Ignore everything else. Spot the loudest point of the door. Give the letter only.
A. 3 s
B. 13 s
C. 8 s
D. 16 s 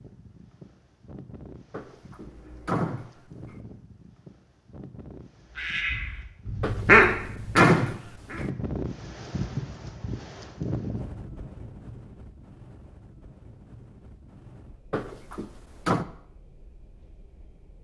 C.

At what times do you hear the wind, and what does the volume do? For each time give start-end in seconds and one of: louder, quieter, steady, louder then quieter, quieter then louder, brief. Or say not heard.
0.0-17.7 louder then quieter.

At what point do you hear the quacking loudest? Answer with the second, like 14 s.
7 s.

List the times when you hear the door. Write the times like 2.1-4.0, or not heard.
1.7-3.5, 6.6-8.4, 14.9-16.1.